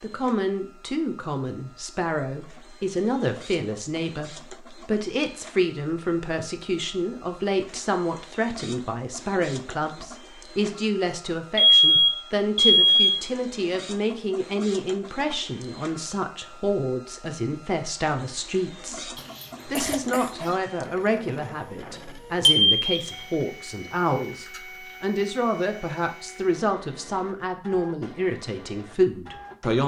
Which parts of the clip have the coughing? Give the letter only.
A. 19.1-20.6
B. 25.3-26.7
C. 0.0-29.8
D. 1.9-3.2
A.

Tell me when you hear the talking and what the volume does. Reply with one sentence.
The talking can be heard from 0.0 to 29.8 s, at a steady volume.